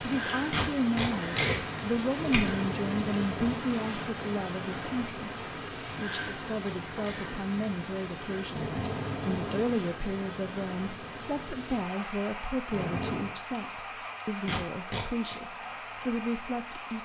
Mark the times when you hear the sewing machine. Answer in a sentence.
The sewing machine can't be heard in this clip.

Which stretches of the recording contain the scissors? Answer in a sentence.
You can hear the scissors from 2.1 to 3.5 s, from 8.6 to 9.7 s and from 12.7 to 13.3 s.